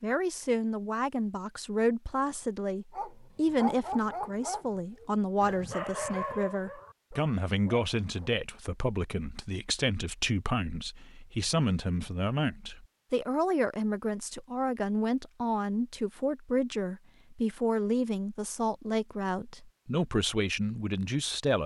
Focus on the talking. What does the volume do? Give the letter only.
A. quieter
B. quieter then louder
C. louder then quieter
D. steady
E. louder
D.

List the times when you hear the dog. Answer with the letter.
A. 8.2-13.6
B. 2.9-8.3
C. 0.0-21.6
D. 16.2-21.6
B.